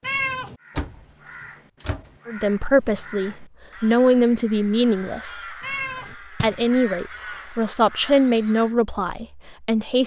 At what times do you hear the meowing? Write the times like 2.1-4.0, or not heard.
0.0-0.6, 5.6-6.2.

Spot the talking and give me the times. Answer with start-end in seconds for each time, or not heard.
2.2-5.5, 6.4-10.0.